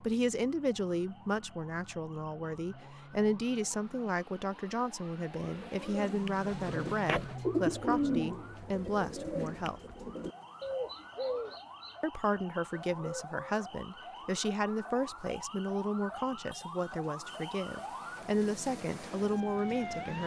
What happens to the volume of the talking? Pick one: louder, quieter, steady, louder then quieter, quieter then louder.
steady.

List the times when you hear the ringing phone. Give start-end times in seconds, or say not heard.
not heard.